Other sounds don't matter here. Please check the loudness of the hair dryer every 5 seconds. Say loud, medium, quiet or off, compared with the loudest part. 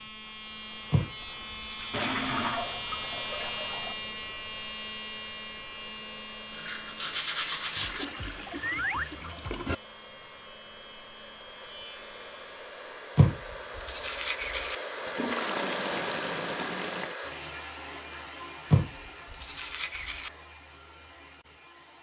quiet, quiet, medium, loud, quiet.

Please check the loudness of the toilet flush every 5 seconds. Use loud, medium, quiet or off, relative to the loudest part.
loud, loud, off, loud, off.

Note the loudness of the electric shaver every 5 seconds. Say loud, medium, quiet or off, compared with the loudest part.
loud, medium, quiet, off, off.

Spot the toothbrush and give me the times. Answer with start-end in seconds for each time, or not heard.
0.9-2.5, 6.5-8.1, 13.2-14.8, 18.7-20.3.